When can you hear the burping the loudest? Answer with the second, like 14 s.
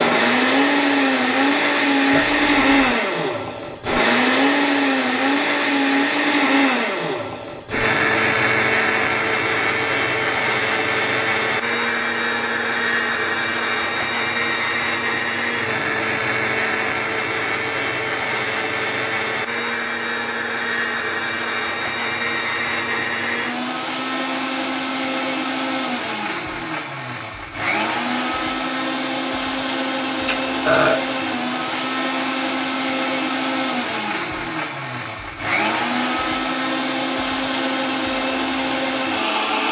31 s.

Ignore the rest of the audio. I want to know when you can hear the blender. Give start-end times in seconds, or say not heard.
0.0-39.6.